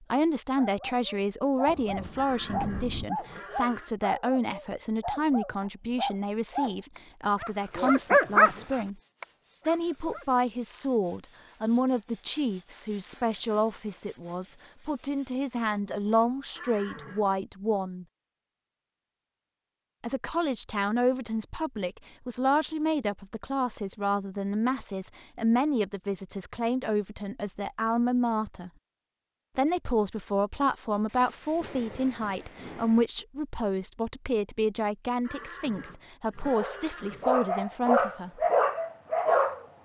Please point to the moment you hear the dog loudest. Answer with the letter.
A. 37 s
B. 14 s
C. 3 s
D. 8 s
D.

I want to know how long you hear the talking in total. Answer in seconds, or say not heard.
35 s.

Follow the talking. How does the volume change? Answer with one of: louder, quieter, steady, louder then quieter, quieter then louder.
steady.